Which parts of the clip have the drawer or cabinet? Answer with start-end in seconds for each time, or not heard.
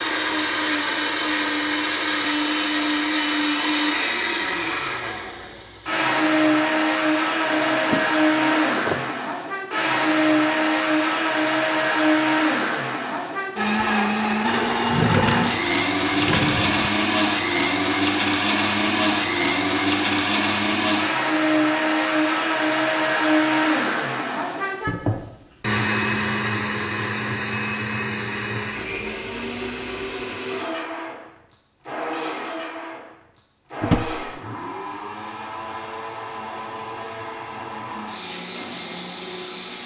7.4-9.1, 14.8-16.9, 33.8-34.4.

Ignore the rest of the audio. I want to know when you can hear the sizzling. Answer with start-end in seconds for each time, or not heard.
not heard.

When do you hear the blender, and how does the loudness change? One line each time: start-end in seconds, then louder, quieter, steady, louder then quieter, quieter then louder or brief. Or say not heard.
0.0-39.8 quieter.